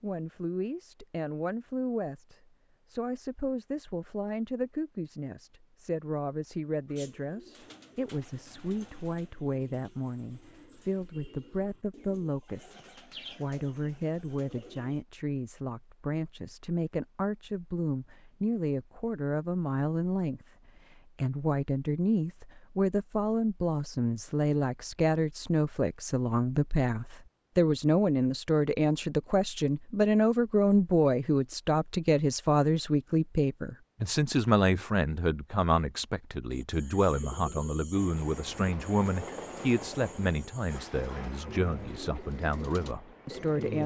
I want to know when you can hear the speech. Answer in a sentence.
You can hear the speech from 0.0 to 43.8 s.